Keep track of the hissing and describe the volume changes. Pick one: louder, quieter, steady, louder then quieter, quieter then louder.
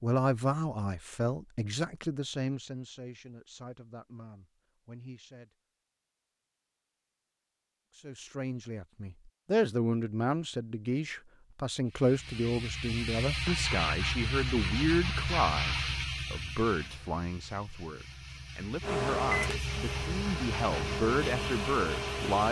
quieter then louder.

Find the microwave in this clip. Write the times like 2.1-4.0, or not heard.
18.8-22.4.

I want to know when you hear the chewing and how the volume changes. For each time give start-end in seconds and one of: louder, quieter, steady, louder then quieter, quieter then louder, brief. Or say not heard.
not heard.